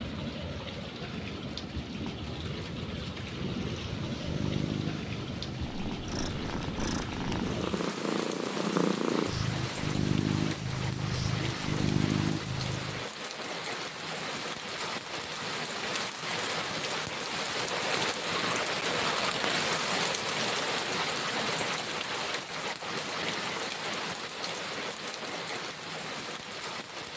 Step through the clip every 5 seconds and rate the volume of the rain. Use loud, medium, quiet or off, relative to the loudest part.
medium, medium, medium, loud, loud, medium.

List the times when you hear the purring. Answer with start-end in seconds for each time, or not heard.
3.7-13.1.